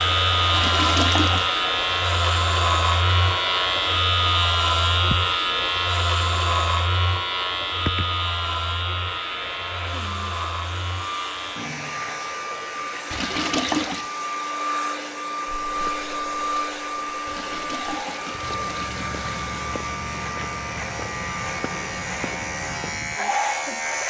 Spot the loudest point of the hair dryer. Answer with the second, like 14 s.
16 s.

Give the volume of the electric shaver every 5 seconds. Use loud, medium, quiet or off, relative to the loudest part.
loud, loud, quiet, quiet, medium.